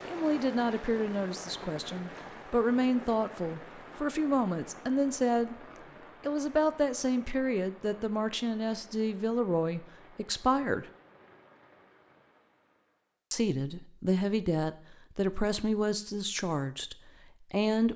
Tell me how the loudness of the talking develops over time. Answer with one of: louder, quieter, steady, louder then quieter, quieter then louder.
steady.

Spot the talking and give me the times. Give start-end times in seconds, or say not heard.
0.1-5.5, 6.2-10.9, 13.3-17.9.